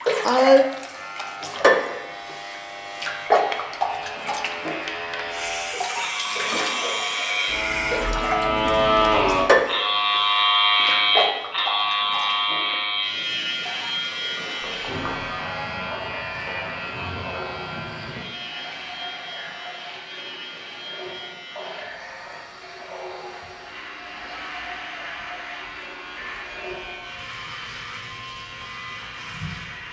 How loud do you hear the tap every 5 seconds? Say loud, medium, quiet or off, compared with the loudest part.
loud, loud, medium, quiet, quiet, quiet.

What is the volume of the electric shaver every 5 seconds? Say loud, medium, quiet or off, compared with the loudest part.
quiet, loud, loud, medium, quiet, quiet.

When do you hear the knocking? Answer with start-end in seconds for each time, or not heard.
14.6-15.3.